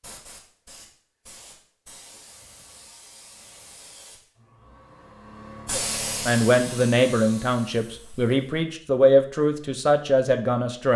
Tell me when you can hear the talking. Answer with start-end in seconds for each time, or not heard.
5.7-10.9.